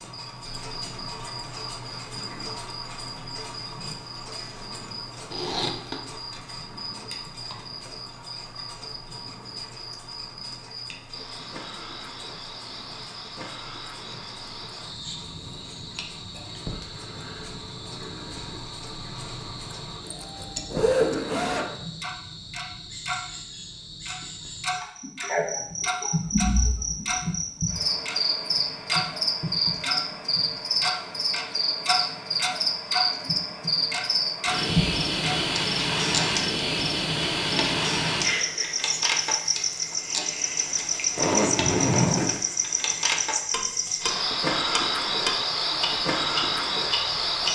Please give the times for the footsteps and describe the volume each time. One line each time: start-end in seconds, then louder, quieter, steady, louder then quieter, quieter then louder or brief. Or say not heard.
not heard.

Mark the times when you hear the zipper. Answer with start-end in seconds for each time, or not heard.
5.3-6.0, 20.0-21.8, 41.1-42.4.